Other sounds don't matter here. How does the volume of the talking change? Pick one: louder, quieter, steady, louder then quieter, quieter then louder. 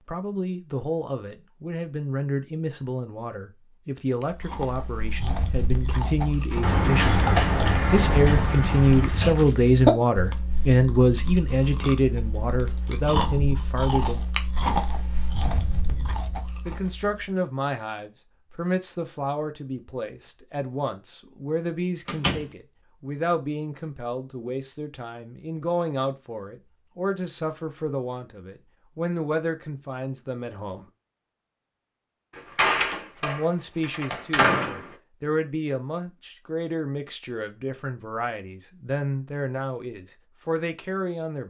louder then quieter.